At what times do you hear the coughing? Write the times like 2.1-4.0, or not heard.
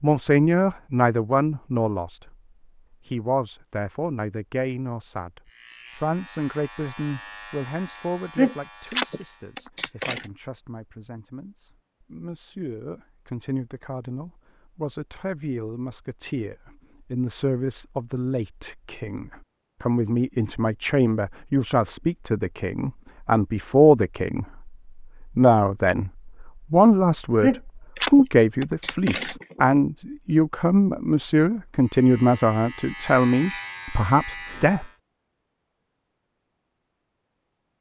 8.3-10.2, 27.4-29.6.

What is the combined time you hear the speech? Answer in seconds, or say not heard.
34 s.